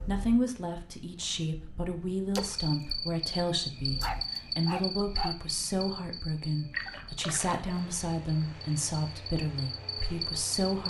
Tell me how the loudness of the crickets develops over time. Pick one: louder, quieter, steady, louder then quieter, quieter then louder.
quieter then louder.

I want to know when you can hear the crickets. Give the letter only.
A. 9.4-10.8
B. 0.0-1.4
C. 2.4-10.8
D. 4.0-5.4
C.